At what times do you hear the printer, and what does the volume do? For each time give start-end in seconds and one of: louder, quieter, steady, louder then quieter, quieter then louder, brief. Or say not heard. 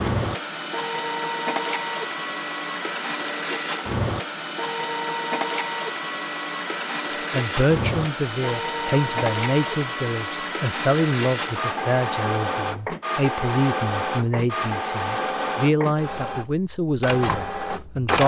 0.0-18.2 steady.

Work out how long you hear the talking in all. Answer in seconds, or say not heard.
11 s.